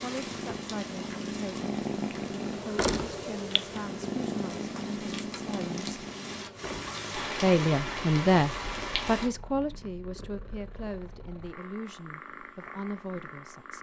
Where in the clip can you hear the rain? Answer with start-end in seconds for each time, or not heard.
0.0-9.3.